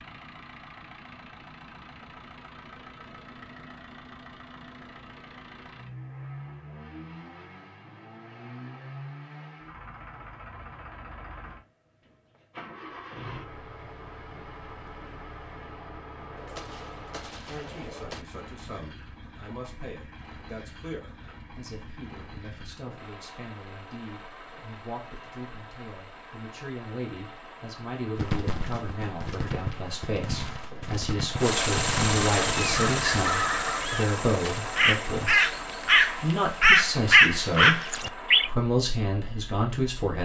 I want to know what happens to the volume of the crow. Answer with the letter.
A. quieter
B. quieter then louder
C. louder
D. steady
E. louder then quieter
C.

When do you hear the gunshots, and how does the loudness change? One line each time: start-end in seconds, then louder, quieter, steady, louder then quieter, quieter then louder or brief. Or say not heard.
16.4-18.2 brief
28.1-33.0 louder.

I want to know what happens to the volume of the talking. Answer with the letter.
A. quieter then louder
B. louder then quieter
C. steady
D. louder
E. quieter
D.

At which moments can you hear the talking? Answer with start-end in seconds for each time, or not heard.
17.4-35.5, 36.2-40.2.